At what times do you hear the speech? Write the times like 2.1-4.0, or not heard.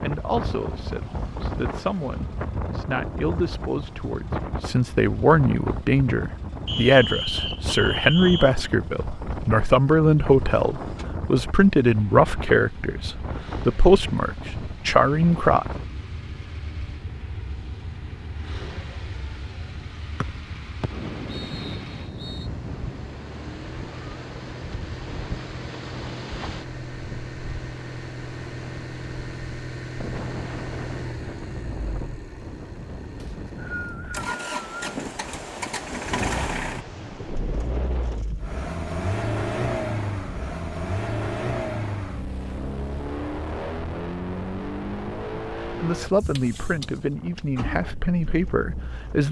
0.0-15.7, 45.2-49.2.